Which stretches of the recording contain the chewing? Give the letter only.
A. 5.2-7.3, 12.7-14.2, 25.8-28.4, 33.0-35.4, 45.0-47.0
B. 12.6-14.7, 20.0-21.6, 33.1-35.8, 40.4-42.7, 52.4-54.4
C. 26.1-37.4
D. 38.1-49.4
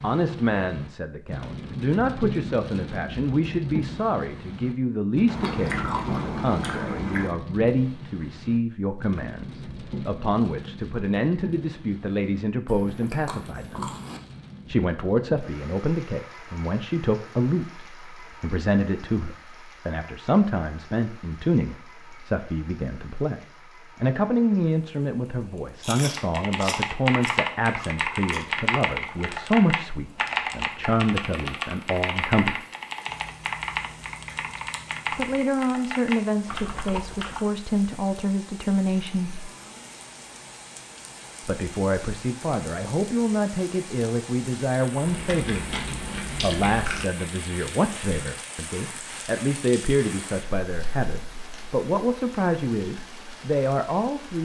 A.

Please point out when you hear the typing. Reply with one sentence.
The typing can be heard from 26.1 to 37.4 s.